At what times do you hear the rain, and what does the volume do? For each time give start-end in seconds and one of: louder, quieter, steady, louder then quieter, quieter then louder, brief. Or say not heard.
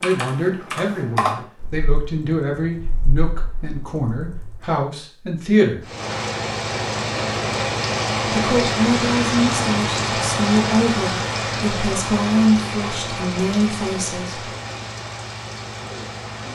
5.8-16.4 quieter.